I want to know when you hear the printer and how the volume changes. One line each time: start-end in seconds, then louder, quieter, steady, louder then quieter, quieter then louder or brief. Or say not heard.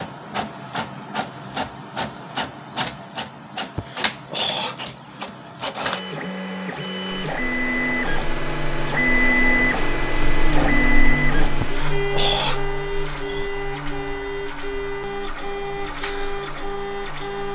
0.0-17.4 louder then quieter.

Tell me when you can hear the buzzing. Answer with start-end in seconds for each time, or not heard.
7.1-17.4.